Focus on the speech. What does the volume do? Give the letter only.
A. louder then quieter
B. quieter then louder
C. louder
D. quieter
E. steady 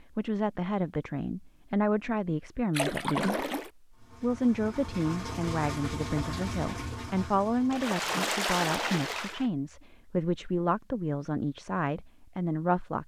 E.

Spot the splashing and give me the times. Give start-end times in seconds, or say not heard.
2.7-3.7, 7.7-9.5.